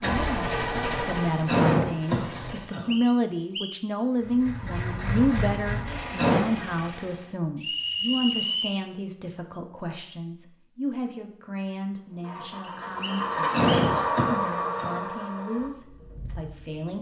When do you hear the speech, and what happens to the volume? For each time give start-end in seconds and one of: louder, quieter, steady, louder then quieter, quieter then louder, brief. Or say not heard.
0.0-16.9 quieter.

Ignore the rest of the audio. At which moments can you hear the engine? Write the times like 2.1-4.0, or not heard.
0.0-2.7, 4.2-7.3, 12.1-16.9.